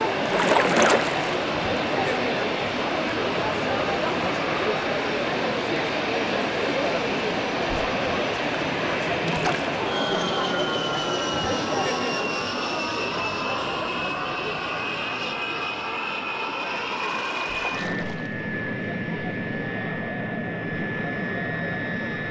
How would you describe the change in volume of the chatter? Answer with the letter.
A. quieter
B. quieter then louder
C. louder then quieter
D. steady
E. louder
A.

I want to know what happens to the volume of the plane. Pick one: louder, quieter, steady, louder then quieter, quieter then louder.
steady.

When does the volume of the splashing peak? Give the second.
1 s.